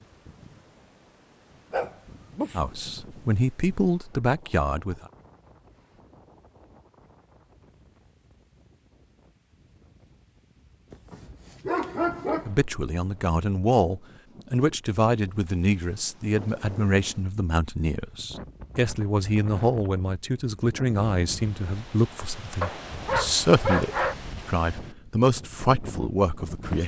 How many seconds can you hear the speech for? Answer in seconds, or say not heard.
17 s.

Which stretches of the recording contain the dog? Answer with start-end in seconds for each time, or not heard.
1.7-2.6, 10.9-12.5, 22.6-24.1.